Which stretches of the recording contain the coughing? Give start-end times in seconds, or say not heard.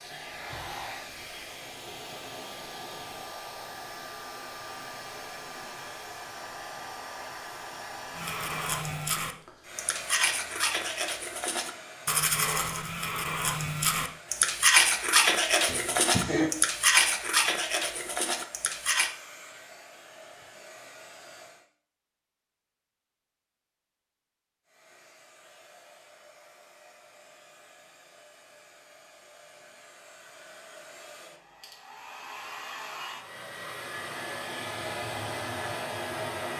15.7-16.5.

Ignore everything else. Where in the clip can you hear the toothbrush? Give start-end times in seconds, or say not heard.
8.2-19.1.